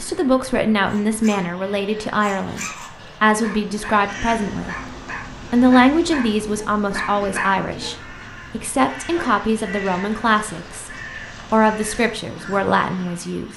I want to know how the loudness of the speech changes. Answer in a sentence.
The volume of the speech stays about the same.